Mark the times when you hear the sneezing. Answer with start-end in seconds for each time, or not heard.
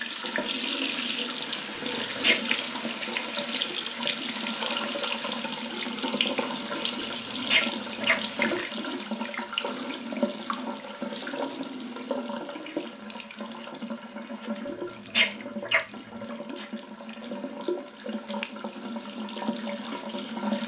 1.8-2.4, 7.0-8.6, 14.7-16.2.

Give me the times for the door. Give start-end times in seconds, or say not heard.
not heard.